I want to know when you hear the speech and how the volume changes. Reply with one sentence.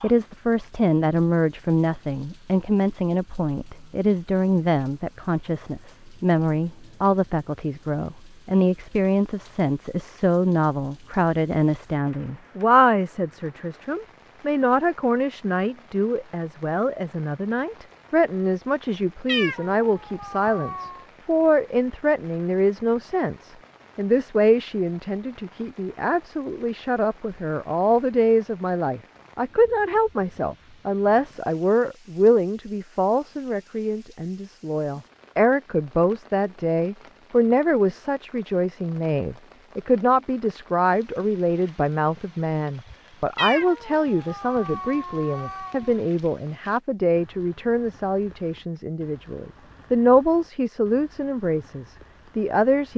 The speech can be heard from 0.0 to 52.9 s, at a steady volume.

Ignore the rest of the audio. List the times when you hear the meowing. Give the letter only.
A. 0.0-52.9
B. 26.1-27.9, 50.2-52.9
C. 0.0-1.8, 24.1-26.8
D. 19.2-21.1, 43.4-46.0
D.